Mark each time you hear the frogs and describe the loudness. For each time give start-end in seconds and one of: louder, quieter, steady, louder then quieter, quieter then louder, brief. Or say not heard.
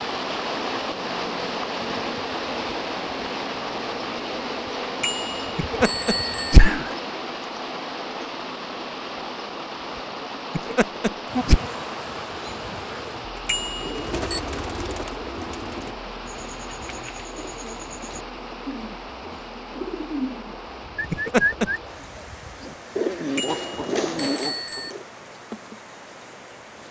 not heard.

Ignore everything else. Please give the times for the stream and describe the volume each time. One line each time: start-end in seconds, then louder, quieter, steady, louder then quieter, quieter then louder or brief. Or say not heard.
0.0-26.8 quieter.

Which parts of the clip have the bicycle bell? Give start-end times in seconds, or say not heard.
5.0-6.6, 13.4-14.4, 23.4-24.9.